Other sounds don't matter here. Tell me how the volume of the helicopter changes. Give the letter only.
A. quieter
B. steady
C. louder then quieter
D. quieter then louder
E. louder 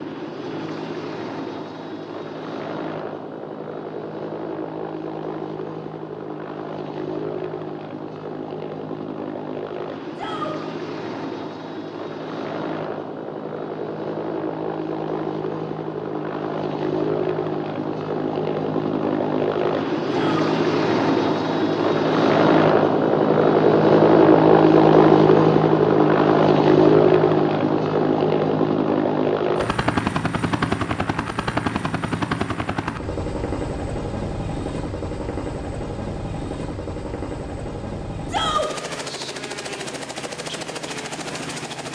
C.